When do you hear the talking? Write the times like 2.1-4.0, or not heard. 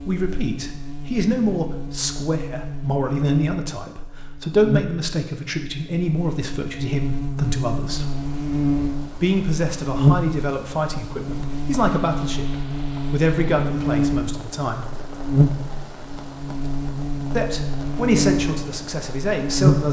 0.0-8.1, 9.2-14.8, 17.4-19.8.